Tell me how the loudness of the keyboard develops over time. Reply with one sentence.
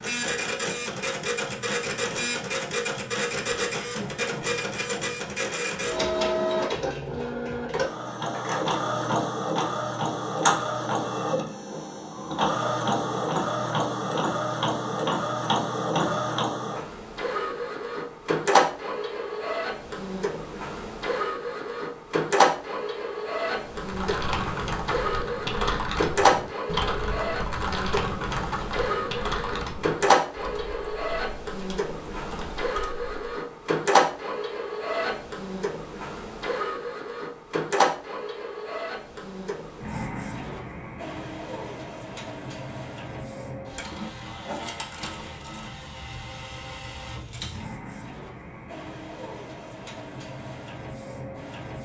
The loudness of the keyboard goes down.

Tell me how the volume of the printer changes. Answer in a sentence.
The volume of the printer goes down.